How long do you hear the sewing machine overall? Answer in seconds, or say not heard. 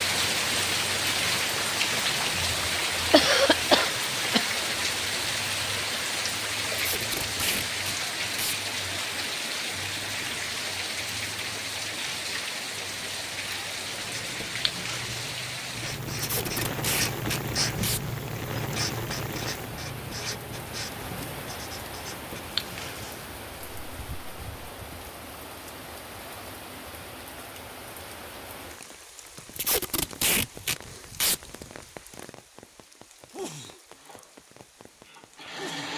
2 s.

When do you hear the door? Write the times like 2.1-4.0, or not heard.
not heard.